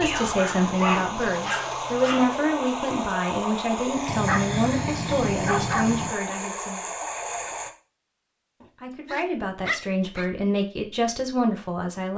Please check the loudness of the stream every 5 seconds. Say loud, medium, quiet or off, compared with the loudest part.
loud, loud, off.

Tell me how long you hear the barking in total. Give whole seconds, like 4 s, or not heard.
6 s.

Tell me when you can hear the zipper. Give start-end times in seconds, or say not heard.
not heard.